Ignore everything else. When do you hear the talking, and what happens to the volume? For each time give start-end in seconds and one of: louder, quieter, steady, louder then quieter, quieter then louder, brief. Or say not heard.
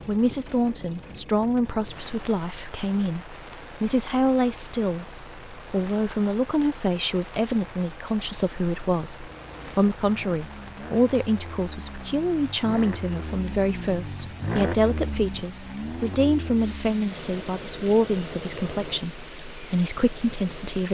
0.1-20.8 steady.